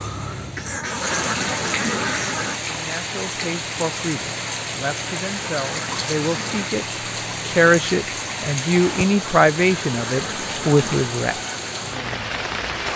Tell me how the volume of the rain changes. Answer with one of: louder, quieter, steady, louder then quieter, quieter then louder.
steady.